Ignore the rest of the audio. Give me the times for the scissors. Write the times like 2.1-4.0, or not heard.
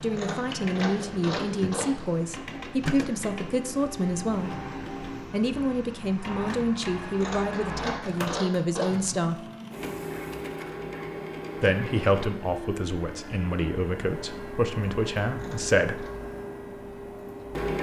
0.1-2.0, 7.2-9.1, 15.3-16.1.